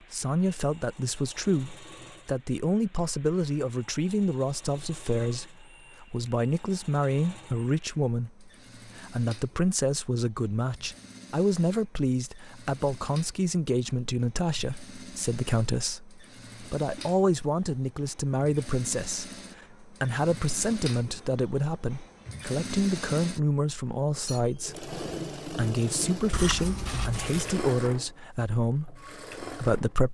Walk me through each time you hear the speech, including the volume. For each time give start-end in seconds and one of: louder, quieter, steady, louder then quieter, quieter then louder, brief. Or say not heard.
0.1-30.0 steady.